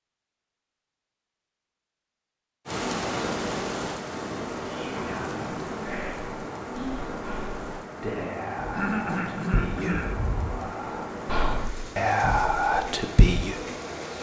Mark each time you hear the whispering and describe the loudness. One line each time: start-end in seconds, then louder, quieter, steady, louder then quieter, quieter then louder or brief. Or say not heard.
4.6-13.6 louder.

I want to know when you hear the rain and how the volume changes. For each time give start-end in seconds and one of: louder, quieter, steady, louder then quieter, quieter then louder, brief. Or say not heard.
2.6-14.1 quieter.